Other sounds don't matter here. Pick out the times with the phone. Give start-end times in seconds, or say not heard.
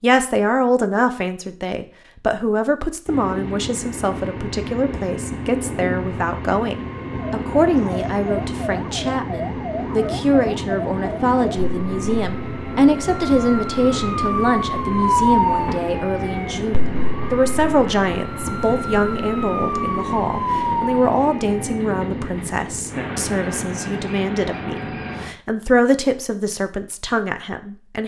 not heard.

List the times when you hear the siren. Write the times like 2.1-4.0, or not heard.
7.3-21.9.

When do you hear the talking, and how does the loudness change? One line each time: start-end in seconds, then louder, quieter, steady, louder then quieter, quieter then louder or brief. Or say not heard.
0.0-28.0 steady.